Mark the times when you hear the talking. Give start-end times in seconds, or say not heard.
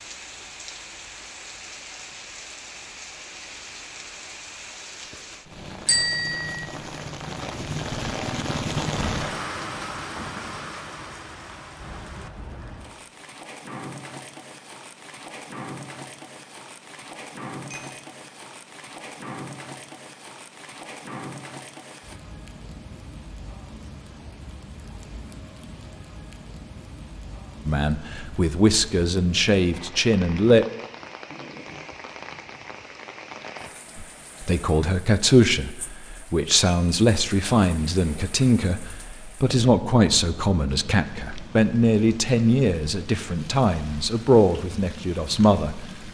27.6-30.6, 34.0-45.9.